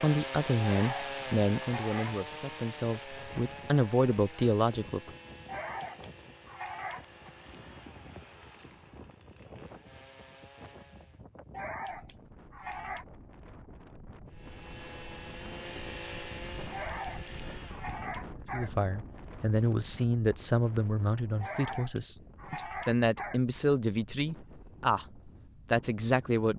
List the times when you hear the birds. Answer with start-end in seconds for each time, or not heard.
not heard.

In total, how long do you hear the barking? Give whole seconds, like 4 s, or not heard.
9 s.